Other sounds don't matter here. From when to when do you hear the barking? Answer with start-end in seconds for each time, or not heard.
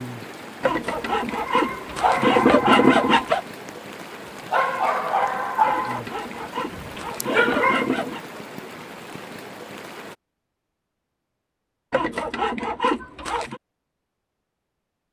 1.4-7.9.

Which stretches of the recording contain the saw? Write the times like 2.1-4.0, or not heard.
0.6-3.4, 5.7-8.2, 11.9-13.6.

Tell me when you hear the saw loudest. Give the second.
3 s.